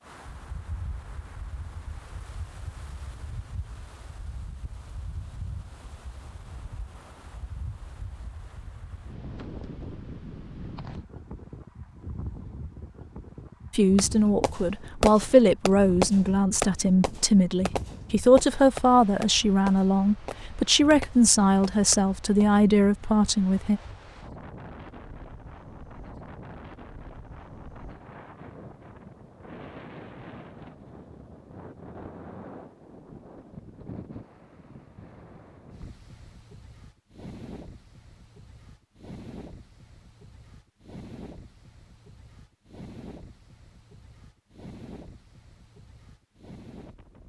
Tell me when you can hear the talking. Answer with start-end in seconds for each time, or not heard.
13.7-23.8.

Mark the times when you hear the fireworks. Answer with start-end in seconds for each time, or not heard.
13.9-22.4.